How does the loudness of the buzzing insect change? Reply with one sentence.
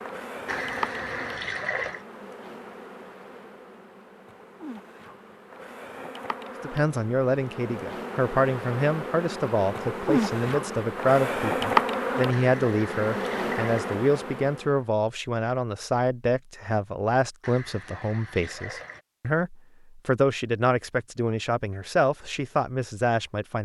The volume of the buzzing insect goes down, then up.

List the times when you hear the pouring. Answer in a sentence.
The pouring can be heard from 0.5 to 2.0 s, from 12.3 to 13.9 s and from 17.4 to 19.0 s.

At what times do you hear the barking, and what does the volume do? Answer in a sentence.
You can't hear the barking here.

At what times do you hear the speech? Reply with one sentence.
The speech can be heard from 6.6 to 23.6 s.